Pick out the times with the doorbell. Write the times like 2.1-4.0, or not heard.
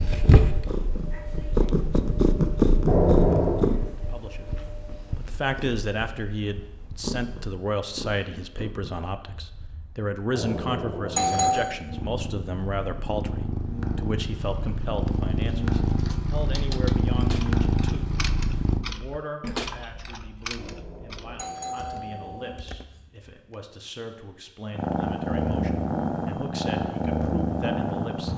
2.9-3.6, 10.3-11.7, 20.6-22.6.